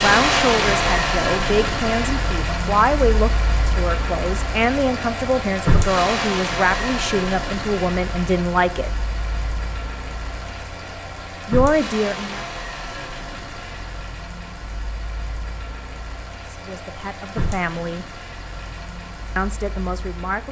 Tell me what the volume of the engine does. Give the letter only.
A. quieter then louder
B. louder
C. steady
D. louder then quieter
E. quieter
E.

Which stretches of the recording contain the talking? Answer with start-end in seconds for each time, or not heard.
0.0-8.9, 11.4-12.4, 16.4-18.1, 19.4-20.4.